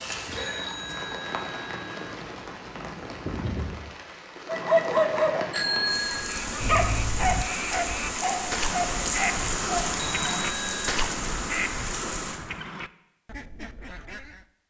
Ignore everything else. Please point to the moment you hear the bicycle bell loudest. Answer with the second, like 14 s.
6 s.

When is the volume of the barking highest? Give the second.
5 s.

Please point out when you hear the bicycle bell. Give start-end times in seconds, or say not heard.
0.3-2.1, 5.5-7.5, 10.1-10.9.